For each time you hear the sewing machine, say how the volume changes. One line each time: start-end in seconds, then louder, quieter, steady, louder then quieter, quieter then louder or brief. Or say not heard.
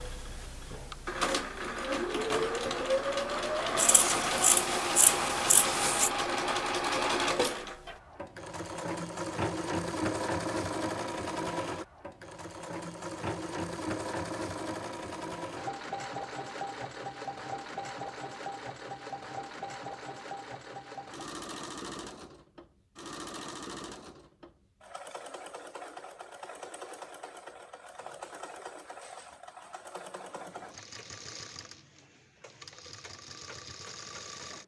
0.0-34.6 quieter.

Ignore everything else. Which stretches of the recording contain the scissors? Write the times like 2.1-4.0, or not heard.
3.8-6.1.